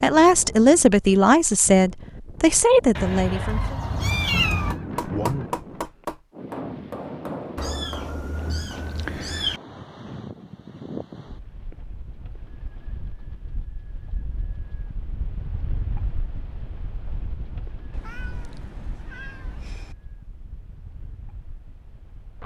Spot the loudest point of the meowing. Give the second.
4 s.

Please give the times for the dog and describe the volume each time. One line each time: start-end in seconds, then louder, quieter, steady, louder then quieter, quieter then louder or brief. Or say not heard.
not heard.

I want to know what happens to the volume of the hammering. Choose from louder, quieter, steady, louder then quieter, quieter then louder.
quieter.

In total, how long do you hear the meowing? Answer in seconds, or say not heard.
6 s.